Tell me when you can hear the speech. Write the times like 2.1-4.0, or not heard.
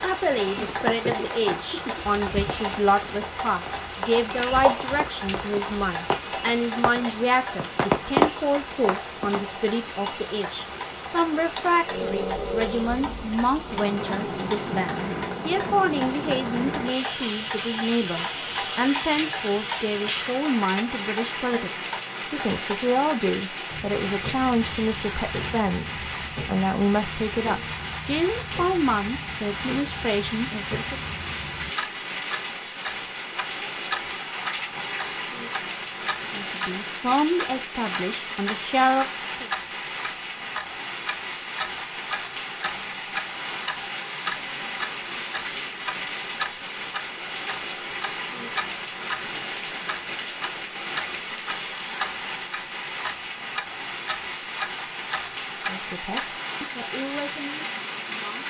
0.0-31.0, 36.3-39.5, 55.6-58.4.